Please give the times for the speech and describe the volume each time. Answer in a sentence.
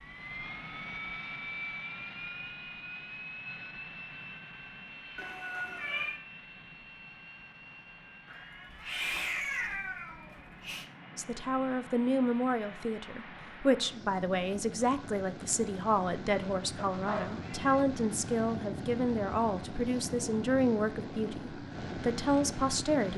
You can hear the speech from 11.2 to 23.1 s, at a steady volume.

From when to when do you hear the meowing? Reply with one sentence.
The meowing can be heard from 5.2 to 6.2 s, from 8.2 to 10.8 s and from 16.9 to 17.9 s.